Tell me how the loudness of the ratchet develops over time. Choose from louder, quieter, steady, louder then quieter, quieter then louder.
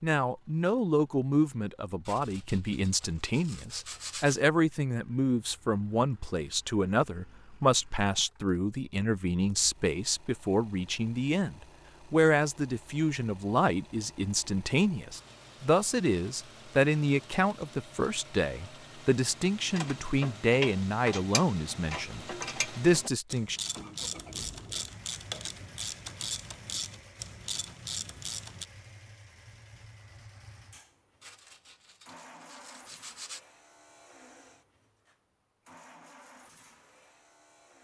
steady.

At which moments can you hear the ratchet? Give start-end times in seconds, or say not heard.
19.6-28.6.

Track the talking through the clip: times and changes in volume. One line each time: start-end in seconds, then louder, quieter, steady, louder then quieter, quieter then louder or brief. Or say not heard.
0.0-23.6 steady.